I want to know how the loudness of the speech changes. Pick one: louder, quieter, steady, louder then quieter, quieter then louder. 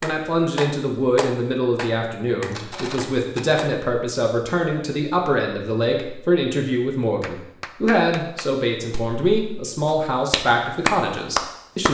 steady.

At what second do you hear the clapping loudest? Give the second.
11 s.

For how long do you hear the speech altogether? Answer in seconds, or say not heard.
12 s.